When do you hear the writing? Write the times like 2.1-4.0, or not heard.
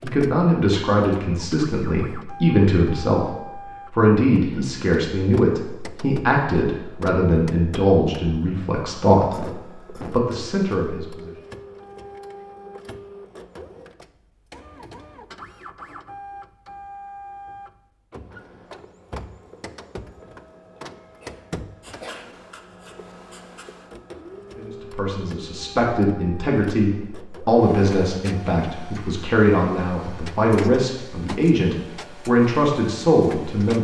21.8-23.9.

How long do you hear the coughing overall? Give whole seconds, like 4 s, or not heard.
2 s.